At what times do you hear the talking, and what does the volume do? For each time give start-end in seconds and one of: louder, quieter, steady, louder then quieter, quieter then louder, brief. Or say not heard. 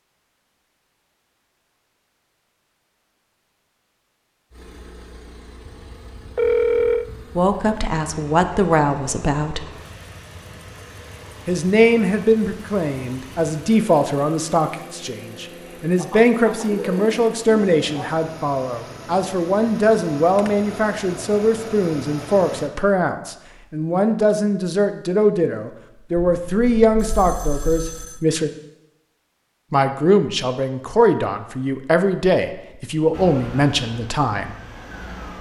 7.3-9.6 brief
11.4-28.5 steady
29.7-34.5 steady.